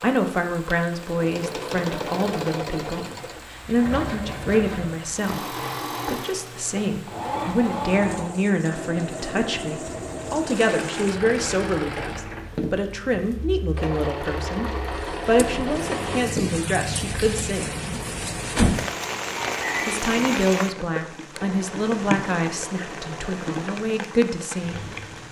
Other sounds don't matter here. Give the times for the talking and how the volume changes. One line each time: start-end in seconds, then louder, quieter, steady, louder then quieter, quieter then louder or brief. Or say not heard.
0.0-17.6 steady
19.9-24.8 quieter then louder.